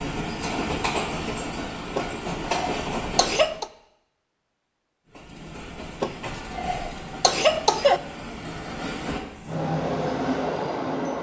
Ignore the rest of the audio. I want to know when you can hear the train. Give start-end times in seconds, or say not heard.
0.0-3.6, 5.1-11.1.